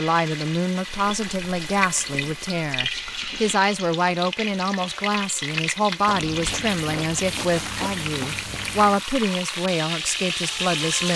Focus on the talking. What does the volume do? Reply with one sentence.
The loudness of the talking stays about the same.